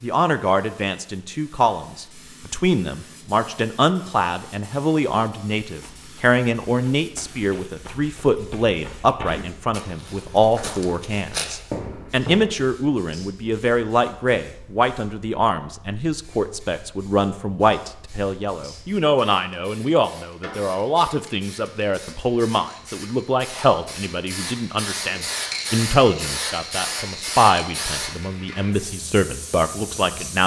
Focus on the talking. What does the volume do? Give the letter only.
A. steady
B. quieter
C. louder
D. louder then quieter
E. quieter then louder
A.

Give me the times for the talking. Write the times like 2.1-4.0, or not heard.
0.0-30.4.